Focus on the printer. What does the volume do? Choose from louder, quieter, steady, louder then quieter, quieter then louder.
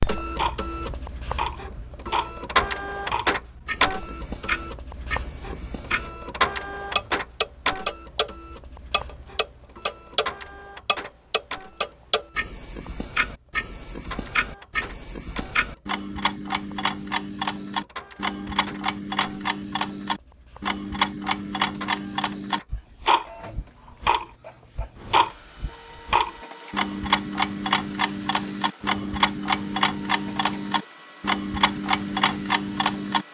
quieter.